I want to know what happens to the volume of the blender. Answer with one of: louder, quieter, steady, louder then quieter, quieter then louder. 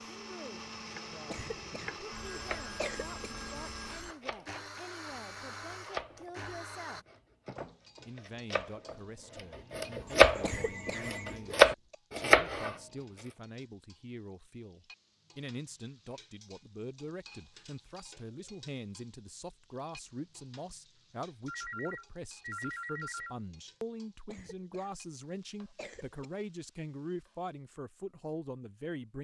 steady.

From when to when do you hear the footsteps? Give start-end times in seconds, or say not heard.
not heard.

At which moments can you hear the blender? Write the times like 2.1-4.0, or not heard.
0.0-7.0.